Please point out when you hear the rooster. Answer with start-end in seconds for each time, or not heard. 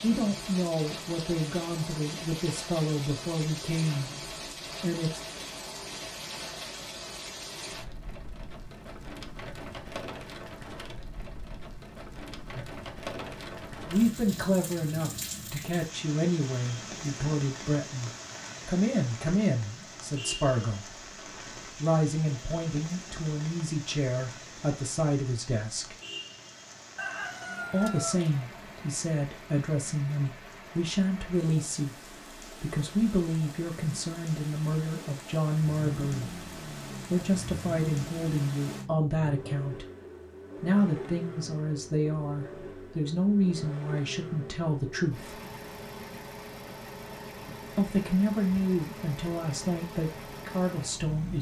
26.9-28.9.